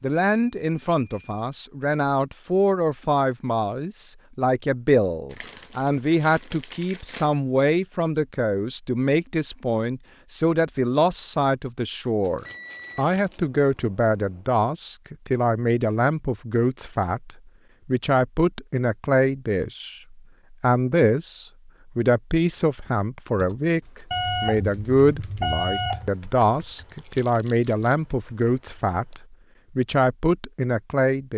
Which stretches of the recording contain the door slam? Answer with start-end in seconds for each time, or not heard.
not heard.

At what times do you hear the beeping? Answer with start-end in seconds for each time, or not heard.
0.1-1.6, 12.2-14.2, 24.1-26.1.